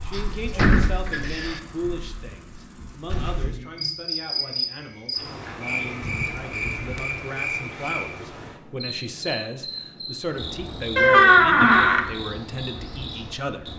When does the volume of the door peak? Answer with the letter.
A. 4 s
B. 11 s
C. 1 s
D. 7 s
B.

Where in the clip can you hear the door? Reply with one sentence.
You can hear the door from 0.1 to 1.6 s, from 6.0 to 7.2 s and from 10.9 to 12.1 s.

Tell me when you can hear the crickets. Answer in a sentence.
The crickets can be heard from 0.0 to 13.7 s.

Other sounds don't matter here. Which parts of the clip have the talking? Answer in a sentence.
You can hear the talking from 0.0 to 13.7 s.